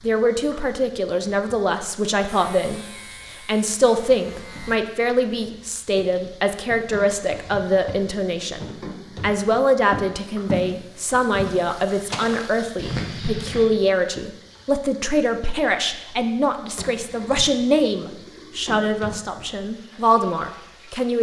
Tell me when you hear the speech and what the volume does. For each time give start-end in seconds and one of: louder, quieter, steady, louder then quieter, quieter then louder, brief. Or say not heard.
0.0-21.1 steady.